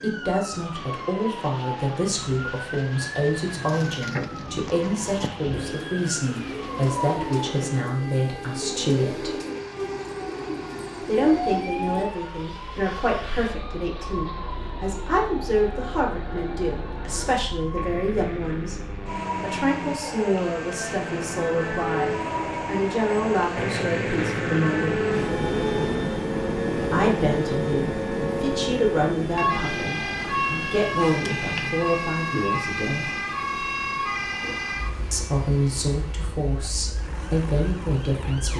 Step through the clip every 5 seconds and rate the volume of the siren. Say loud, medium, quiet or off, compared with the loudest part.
medium, medium, medium, medium, loud, loud, loud, quiet.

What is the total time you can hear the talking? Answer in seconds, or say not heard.
33 s.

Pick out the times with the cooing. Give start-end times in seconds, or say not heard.
3.6-12.1.